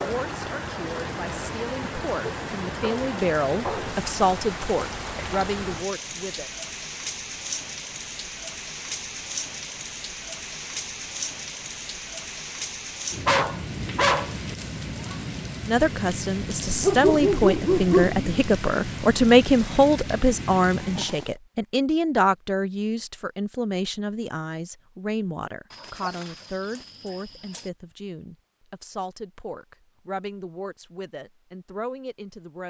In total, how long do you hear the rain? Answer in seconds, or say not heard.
21 s.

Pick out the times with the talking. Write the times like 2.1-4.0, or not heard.
0.0-6.5, 15.7-32.6.